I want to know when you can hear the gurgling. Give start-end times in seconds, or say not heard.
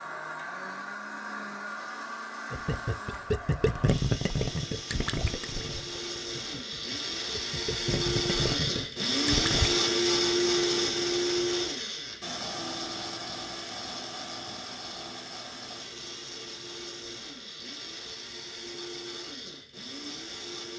2.5-9.8.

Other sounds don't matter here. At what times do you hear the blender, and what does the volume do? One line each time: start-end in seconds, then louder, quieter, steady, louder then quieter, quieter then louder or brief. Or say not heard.
0.0-20.7 louder then quieter.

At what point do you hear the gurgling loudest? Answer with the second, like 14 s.
4 s.